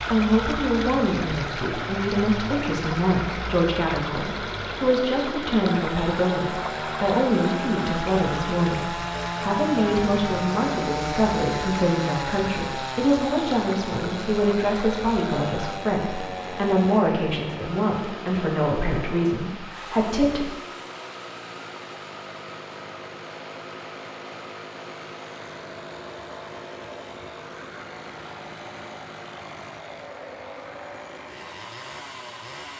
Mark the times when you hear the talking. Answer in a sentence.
The talking can be heard from 0.1 to 20.4 s.